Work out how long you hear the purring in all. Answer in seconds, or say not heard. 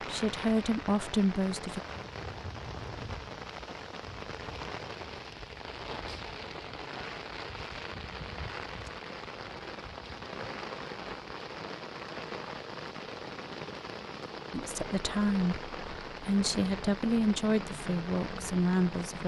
not heard.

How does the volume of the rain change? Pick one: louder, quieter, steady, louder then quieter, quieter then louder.
steady.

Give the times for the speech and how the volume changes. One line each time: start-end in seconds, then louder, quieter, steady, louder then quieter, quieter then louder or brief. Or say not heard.
0.0-1.8 brief
14.5-19.2 steady.